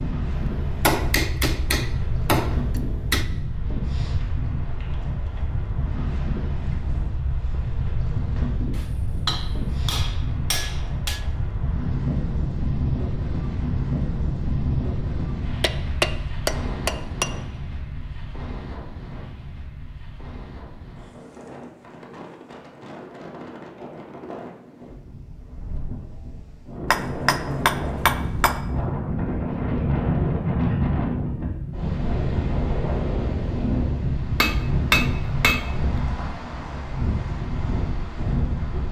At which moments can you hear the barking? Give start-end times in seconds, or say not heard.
not heard.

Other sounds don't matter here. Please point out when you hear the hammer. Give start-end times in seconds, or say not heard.
0.3-3.2, 8.8-11.2, 15.6-17.3, 26.9-28.6, 34.4-35.8.